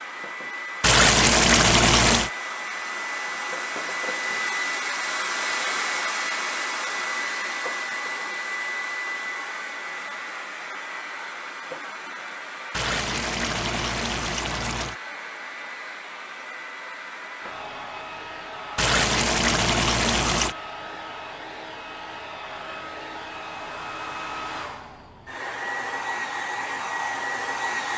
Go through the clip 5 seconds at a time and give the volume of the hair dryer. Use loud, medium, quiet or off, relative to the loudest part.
loud, loud, medium, medium, medium, loud.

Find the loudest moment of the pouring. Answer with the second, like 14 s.
1 s.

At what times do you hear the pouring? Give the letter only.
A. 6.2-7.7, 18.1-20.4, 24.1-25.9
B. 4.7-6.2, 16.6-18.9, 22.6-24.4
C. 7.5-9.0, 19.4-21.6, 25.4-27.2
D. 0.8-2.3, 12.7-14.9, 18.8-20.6
D.